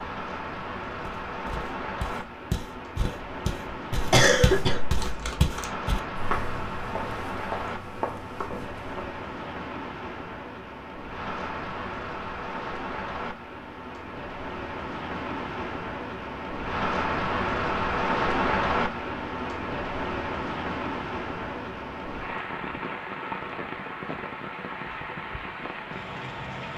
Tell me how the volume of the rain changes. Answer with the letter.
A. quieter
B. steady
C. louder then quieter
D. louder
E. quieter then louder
C.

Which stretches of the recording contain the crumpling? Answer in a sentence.
You can hear the crumpling from 5.0 to 5.7 s.